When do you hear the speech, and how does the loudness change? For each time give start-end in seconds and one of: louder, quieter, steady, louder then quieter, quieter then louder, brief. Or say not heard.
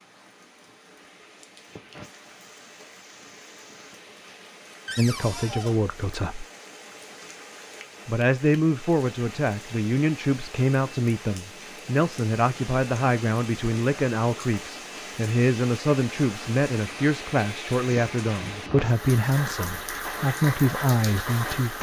5.0-6.5 brief
8.1-21.7 steady.